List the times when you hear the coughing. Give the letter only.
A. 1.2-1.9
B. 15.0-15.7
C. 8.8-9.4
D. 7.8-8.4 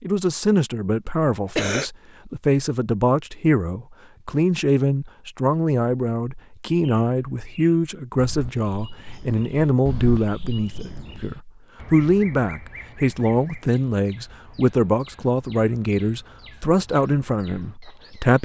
A.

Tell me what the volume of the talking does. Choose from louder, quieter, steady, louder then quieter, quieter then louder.
steady.